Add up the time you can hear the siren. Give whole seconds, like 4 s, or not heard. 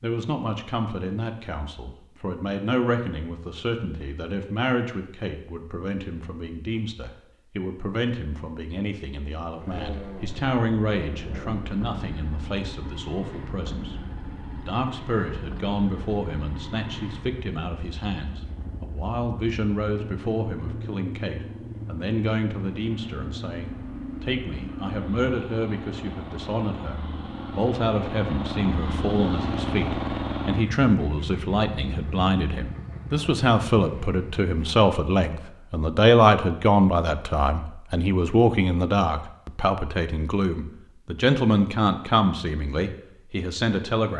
not heard.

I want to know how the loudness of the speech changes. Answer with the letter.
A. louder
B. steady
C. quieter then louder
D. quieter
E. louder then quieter
A.